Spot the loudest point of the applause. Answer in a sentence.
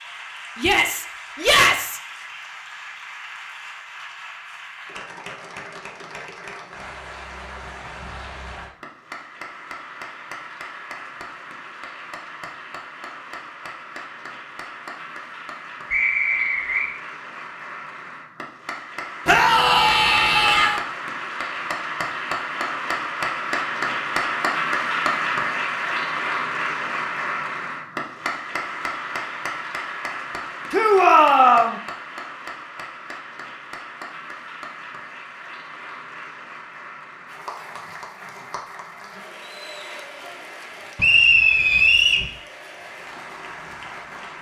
The volume of the applause peaks at 25 seconds.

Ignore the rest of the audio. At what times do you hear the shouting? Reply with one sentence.
The shouting can be heard from 0.6 to 2.0 s, from 19.2 to 20.8 s and from 30.7 to 31.8 s.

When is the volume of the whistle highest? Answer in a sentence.
The loudest moment of the whistle is at 41 seconds.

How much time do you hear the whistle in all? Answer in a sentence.
The whistle can be heard for 2 seconds in total.